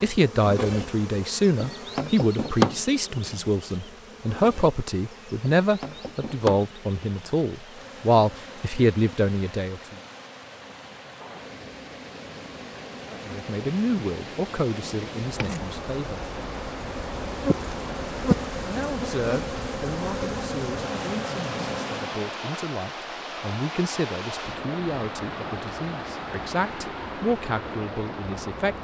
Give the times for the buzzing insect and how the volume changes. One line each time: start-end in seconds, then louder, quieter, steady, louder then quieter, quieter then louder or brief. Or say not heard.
0.0-22.4 quieter then louder.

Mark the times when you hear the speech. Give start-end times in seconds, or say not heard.
0.0-9.9, 13.1-16.2, 18.6-28.7.